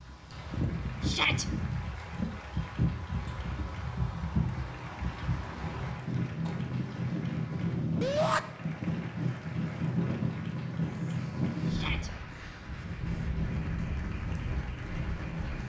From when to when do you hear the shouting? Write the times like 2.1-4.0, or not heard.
1.0-1.4, 8.0-8.4, 11.7-12.1.